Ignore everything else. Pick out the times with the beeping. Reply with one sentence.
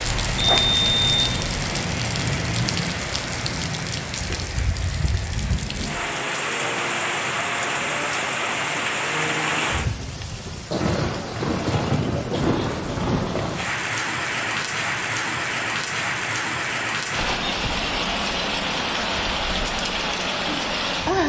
You can hear the beeping from 0.0 to 1.8 s.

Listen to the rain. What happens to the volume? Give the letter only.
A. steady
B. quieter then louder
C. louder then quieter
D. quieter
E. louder
A.